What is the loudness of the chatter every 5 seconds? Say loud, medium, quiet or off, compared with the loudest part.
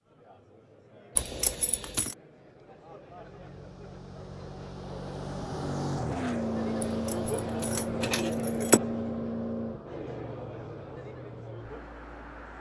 quiet, loud, medium.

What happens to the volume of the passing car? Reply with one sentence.
The loudness of the passing car goes up, then down.